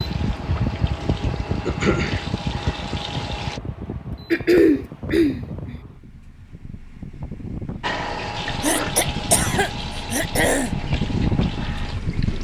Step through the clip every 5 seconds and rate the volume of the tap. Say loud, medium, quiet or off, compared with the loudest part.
medium, loud, medium.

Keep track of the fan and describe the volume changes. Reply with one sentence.
The loudness of the fan goes down, then up.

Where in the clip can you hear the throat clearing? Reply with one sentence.
The throat clearing can be heard from 1.6 to 2.4 s, from 4.3 to 5.8 s and from 8.6 to 10.7 s.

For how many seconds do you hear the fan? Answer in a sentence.
The fan can be heard for 12 seconds in total.